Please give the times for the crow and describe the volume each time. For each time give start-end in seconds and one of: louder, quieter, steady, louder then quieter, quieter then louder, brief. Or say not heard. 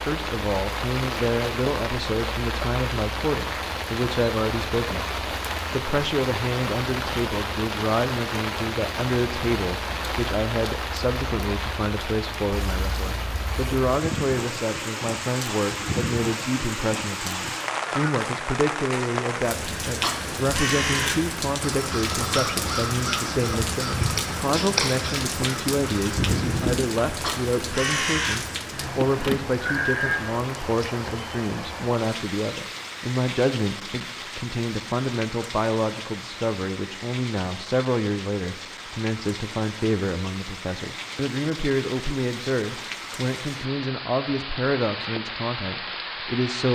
19.9-30.2 steady.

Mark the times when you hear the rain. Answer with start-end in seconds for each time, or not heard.
0.0-46.7.